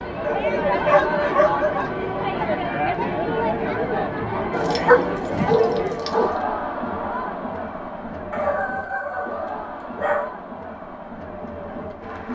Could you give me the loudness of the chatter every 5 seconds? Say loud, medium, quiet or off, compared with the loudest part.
loud, medium, medium.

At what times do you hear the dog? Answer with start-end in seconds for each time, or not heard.
0.2-1.9, 4.5-6.3, 8.3-10.3.